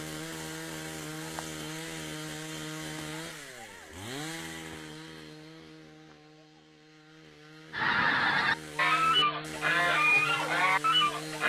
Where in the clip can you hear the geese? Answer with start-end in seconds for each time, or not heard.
7.7-11.4.